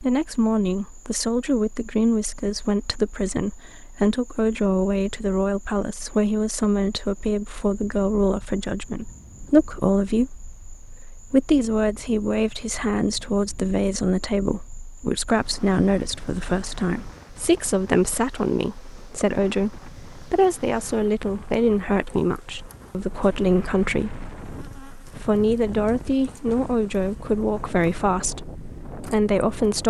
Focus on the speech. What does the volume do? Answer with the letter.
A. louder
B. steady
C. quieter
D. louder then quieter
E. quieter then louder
B.